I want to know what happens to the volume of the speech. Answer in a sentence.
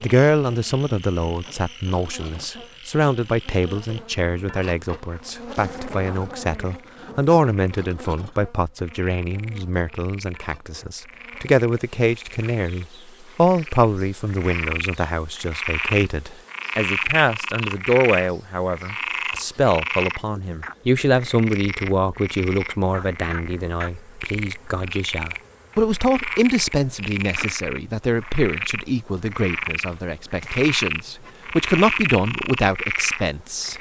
The loudness of the speech stays about the same.